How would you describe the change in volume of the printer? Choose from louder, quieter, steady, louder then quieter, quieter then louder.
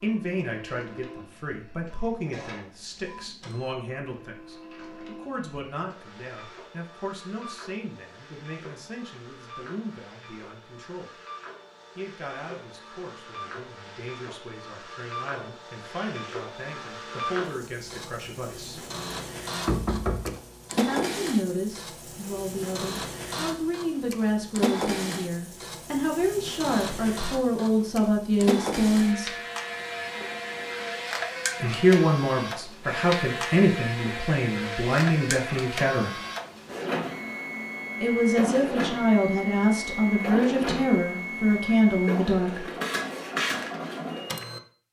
louder.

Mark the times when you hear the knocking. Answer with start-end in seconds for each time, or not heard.
19.6-20.4.